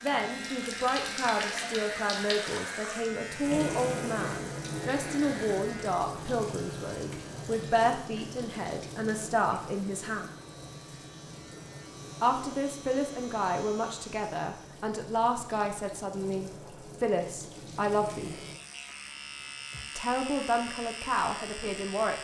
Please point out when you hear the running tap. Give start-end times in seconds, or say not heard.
0.0-18.6.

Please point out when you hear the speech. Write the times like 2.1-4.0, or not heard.
0.0-10.2, 12.2-18.4, 19.9-22.1.